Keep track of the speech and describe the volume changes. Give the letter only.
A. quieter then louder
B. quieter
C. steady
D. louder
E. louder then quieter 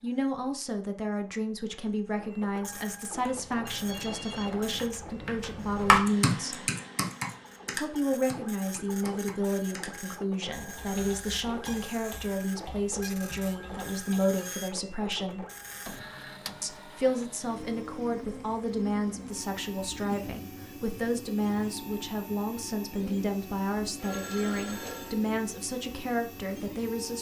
C.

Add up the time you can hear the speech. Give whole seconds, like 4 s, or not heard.
25 s.